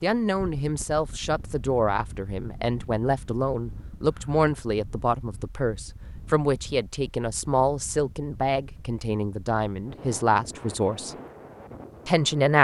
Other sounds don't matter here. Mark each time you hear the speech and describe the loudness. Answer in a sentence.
The speech can be heard from 0.0 to 11.2 s, at a steady volume; and briefly from 12.1 to 12.5 s.